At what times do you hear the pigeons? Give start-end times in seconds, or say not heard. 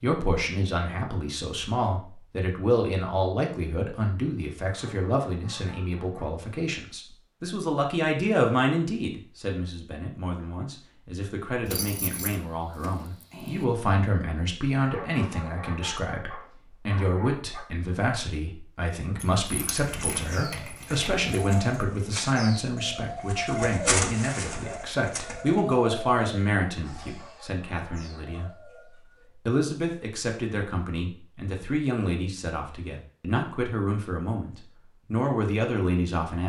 19.8-29.3.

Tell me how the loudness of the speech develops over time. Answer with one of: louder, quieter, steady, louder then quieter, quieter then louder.
steady.